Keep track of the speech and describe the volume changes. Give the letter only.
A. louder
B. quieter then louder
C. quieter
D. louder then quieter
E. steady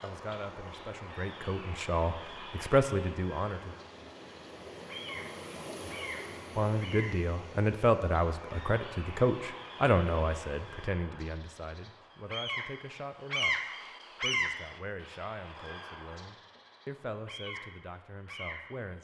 C.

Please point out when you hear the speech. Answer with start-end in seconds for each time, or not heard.
0.0-3.8, 6.5-13.6, 14.2-18.9.